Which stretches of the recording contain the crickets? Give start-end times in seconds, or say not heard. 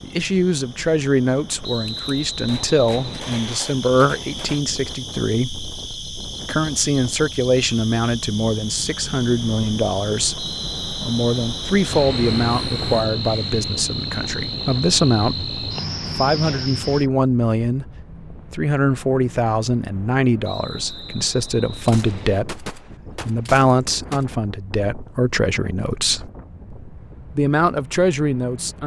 0.0-17.1.